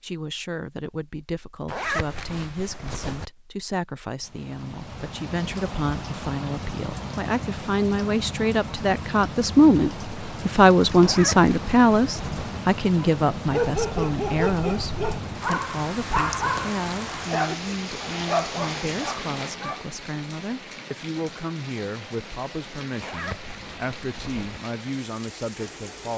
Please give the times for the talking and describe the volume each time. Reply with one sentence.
You can hear the talking from 0.0 to 26.1 s, getting louder then quieter.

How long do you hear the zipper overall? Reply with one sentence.
You can hear the zipper for 5 seconds altogether.